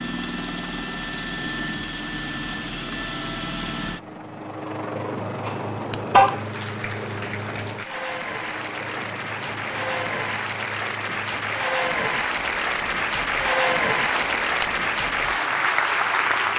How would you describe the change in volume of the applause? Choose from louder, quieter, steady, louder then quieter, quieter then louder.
louder.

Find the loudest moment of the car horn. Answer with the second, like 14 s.
6 s.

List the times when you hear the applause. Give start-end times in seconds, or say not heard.
6.2-16.5.